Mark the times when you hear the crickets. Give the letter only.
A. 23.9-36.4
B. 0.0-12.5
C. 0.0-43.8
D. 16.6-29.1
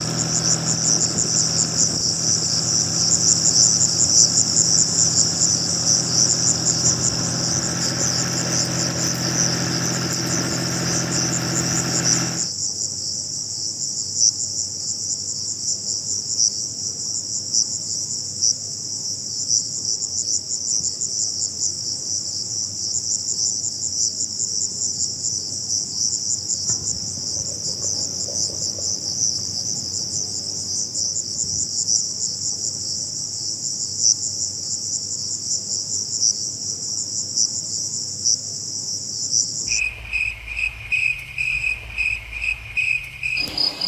C.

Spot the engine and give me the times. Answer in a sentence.
The engine can be heard from 0.0 to 12.5 s.